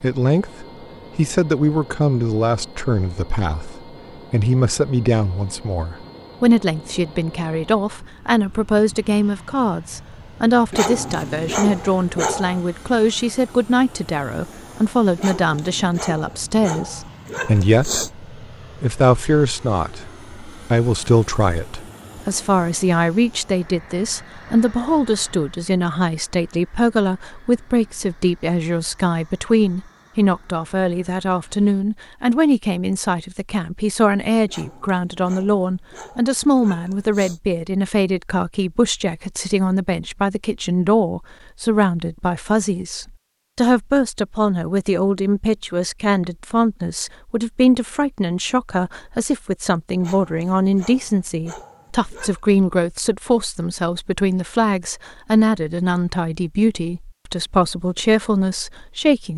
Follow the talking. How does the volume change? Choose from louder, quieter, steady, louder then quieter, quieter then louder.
steady.